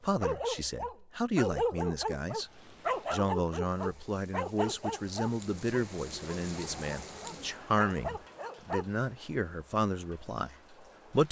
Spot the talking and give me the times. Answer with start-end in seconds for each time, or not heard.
0.0-2.5, 3.1-11.2.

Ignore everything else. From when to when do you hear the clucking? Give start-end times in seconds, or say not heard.
not heard.